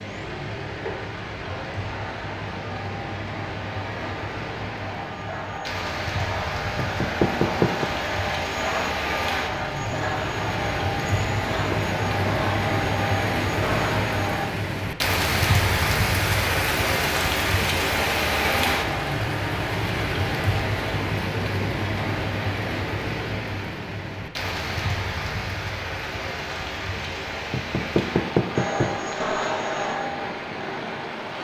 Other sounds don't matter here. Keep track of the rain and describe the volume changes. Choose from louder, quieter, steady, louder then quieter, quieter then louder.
louder then quieter.